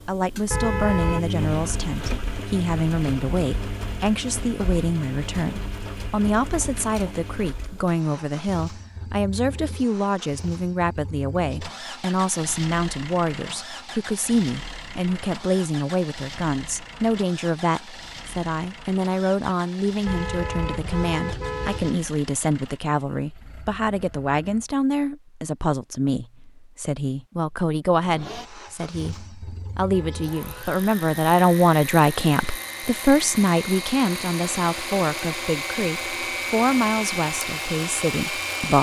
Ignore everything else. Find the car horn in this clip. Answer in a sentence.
The car horn can be heard from 0.5 to 1.2 s, from 20.1 to 21.9 s and from 29.9 to 30.9 s.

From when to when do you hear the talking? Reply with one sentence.
The talking can be heard from 0.0 to 38.7 s.